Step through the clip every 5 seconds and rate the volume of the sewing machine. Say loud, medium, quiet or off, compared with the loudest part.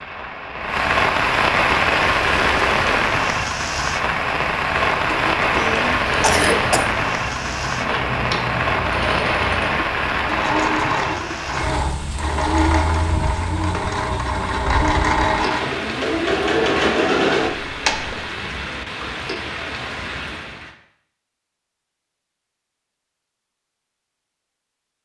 medium, medium, loud, loud, off.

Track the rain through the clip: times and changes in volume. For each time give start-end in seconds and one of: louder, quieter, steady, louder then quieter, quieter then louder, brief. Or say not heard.
0.0-20.8 quieter.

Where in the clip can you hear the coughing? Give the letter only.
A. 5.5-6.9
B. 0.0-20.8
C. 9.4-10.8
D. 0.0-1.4
A.